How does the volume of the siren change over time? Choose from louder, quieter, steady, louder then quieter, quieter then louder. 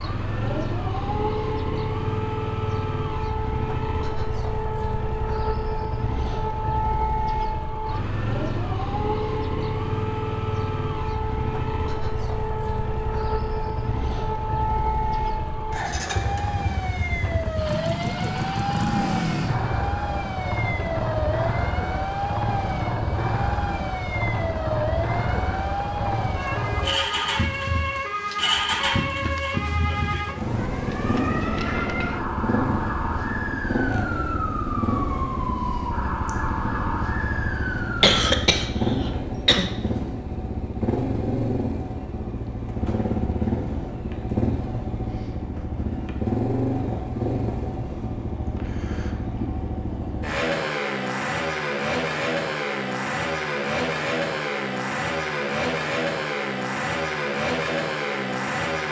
steady.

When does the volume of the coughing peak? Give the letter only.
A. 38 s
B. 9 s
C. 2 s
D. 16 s
A.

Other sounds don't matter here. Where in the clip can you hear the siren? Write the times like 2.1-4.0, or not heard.
0.0-38.2.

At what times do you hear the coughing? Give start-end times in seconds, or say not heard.
38.0-39.7.